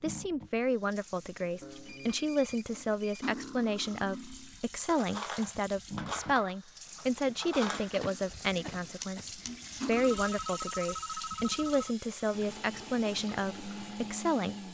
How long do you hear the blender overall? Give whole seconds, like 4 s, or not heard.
2 s.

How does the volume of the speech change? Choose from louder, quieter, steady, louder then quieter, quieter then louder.
steady.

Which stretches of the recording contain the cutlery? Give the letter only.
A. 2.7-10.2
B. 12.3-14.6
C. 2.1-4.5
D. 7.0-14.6
A.